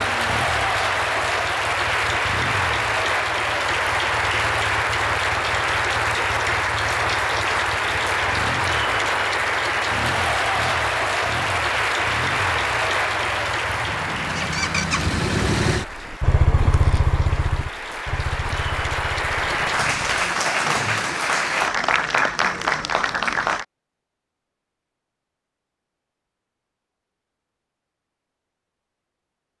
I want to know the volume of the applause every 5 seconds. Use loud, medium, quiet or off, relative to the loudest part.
loud, loud, loud, medium, loud, off.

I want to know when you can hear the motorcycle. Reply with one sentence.
You can hear the motorcycle from 0.0 to 20.4 s.